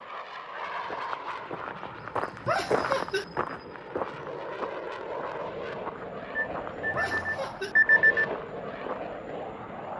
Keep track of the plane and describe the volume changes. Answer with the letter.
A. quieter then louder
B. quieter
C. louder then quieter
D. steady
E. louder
A.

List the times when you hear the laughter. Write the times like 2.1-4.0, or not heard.
2.5-3.2, 6.9-7.8.